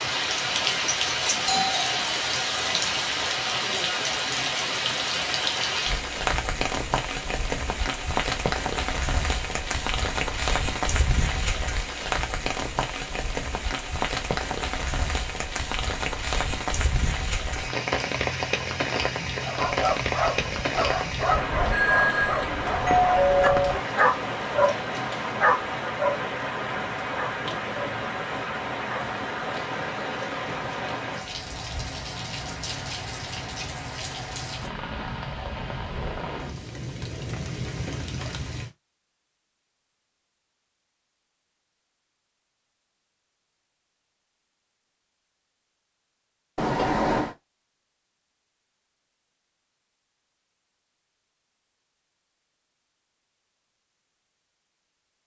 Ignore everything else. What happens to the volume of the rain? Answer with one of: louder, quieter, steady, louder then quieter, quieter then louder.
quieter.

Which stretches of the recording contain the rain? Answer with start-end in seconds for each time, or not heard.
0.0-38.7.